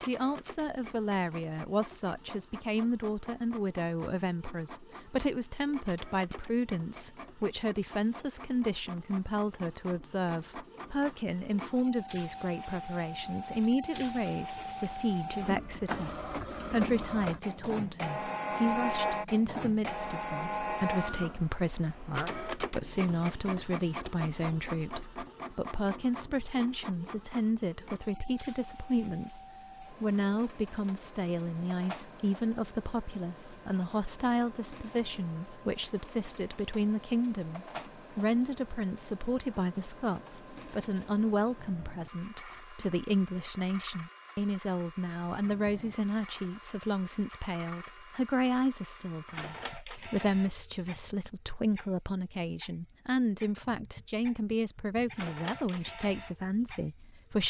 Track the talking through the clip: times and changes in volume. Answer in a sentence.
The talking can be heard from 0.1 to 57.4 s, at a steady volume.